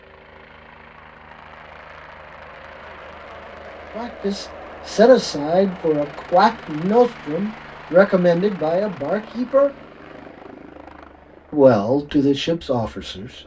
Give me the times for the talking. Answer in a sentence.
You can hear the talking from 4.0 to 9.7 s and from 11.5 to 13.3 s.